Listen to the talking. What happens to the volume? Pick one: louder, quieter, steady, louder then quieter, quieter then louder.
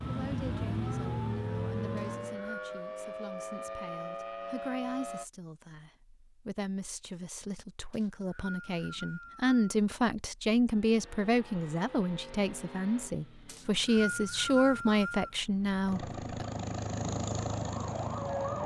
louder.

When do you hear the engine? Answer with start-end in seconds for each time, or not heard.
0.0-2.4, 10.7-18.6.